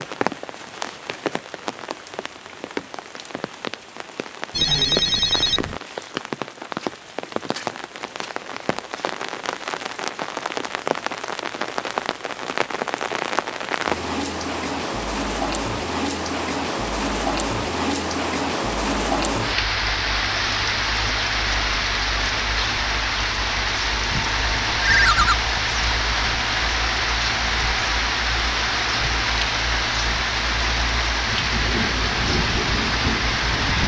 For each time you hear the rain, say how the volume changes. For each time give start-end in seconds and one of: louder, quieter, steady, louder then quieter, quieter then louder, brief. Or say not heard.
0.0-33.8 louder.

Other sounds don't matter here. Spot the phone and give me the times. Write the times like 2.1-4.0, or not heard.
4.5-5.8, 24.8-25.4.